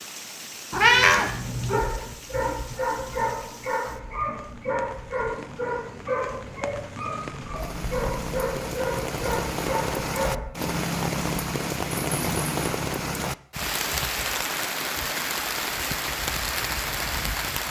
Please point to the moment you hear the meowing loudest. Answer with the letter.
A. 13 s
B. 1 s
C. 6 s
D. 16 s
B.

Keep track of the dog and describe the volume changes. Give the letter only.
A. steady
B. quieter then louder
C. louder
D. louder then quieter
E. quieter
A.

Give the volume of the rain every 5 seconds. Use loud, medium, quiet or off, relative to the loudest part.
quiet, medium, loud, loud.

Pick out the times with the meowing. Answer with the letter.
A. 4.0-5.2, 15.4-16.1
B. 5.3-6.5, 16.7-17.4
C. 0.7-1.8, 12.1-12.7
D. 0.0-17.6
C.